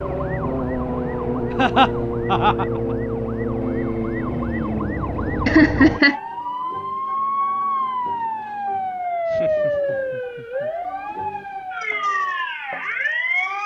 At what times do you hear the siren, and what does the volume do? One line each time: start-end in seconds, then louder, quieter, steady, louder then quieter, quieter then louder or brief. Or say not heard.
0.0-13.6 steady.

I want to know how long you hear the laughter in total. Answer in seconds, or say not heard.
4 s.